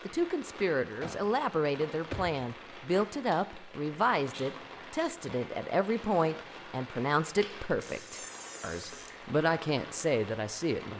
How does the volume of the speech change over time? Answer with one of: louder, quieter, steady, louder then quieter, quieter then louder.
steady.